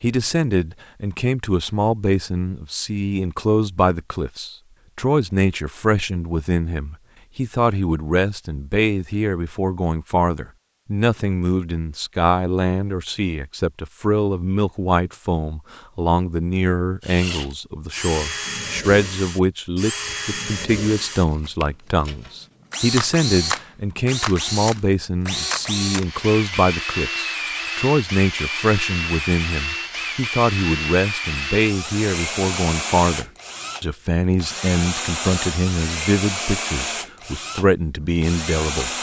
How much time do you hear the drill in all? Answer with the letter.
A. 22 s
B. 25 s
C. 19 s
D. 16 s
A.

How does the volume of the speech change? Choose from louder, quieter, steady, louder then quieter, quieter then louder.
steady.